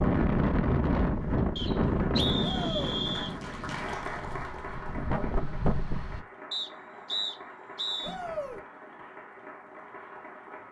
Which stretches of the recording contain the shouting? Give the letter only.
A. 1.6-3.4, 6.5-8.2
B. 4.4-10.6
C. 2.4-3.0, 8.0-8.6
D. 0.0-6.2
C.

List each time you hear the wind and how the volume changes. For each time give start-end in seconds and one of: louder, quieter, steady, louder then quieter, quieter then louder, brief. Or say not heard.
0.0-6.2 quieter then louder.